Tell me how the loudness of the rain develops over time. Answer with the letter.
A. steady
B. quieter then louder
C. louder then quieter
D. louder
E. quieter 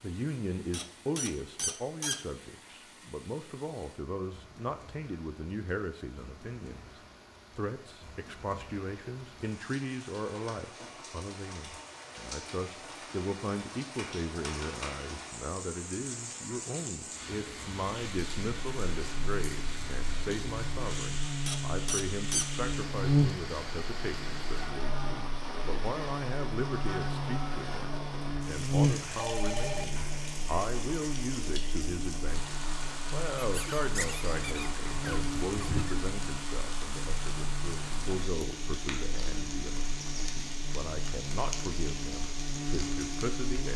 D.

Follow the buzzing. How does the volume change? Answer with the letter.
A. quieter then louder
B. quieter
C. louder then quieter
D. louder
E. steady
B.